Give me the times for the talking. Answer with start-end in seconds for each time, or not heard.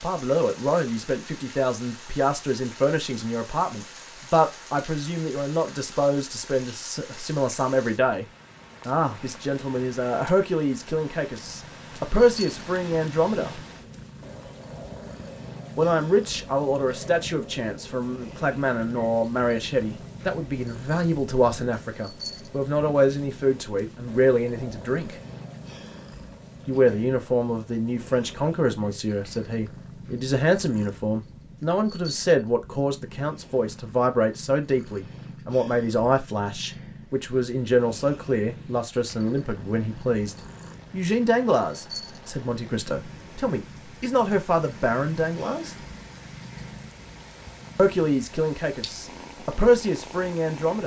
0.0-8.2, 8.8-13.6, 15.8-25.1, 26.6-45.8, 47.8-50.8.